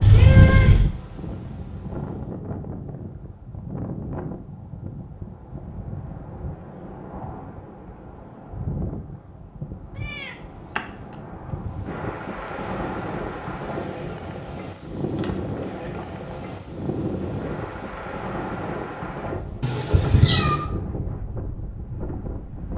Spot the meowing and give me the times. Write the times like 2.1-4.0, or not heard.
0.0-0.9, 10.1-10.8, 19.6-20.6.